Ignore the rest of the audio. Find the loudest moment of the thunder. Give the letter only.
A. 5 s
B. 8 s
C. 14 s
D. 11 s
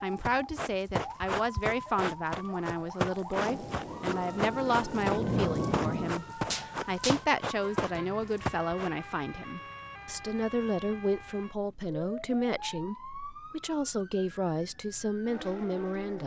A.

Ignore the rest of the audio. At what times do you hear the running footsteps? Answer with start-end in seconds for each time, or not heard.
0.2-8.9.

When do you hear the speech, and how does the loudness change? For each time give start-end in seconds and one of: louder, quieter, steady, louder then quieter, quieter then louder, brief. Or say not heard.
0.0-16.2 steady.